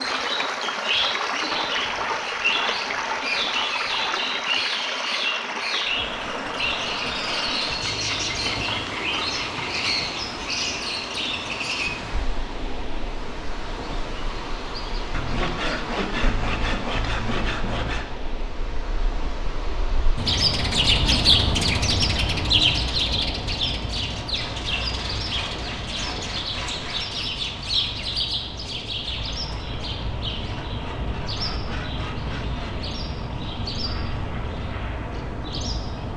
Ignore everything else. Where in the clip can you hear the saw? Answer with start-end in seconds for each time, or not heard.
1.5-4.3, 7.8-9.9, 15.1-18.1, 24.4-27.3, 30.6-32.8.